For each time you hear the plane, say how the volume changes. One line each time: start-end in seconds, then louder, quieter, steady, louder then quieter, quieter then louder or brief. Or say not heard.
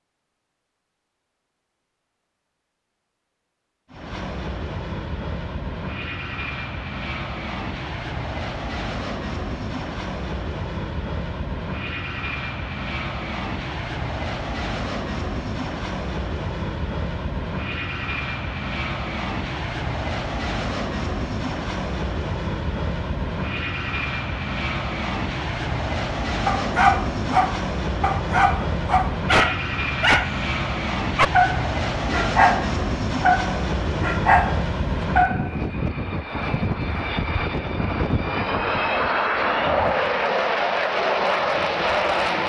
3.9-42.4 louder.